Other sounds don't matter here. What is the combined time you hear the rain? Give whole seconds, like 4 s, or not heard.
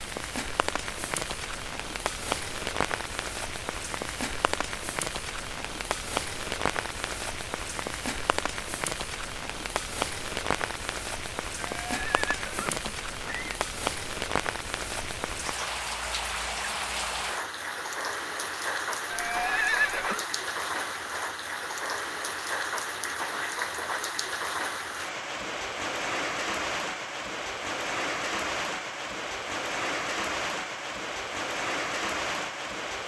33 s.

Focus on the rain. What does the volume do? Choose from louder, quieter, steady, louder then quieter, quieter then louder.
steady.